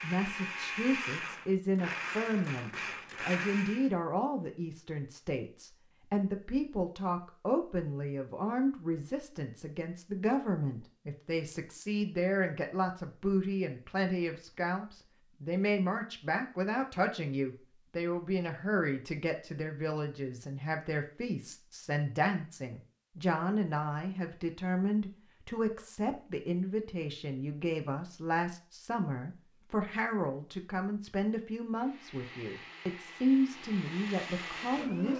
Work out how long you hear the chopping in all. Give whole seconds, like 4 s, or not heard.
not heard.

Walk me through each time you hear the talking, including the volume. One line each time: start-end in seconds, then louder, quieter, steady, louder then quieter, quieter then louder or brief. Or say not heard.
0.0-35.1 steady.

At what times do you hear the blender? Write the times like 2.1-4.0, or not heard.
0.0-3.9, 31.8-35.1.